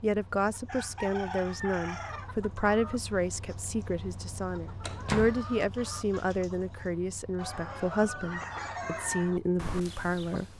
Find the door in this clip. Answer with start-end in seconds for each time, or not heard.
4.8-5.4.